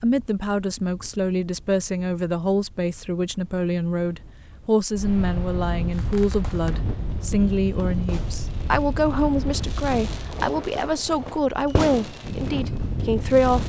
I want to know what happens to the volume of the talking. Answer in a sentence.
The volume of the talking stays about the same.